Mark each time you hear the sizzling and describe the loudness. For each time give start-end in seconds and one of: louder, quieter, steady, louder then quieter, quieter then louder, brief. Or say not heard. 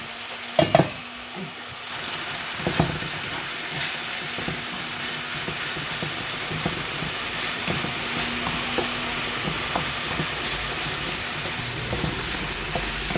0.0-13.1 steady.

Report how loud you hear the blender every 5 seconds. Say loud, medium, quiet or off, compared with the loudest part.
medium, loud, loud.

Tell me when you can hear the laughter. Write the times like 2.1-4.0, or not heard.
not heard.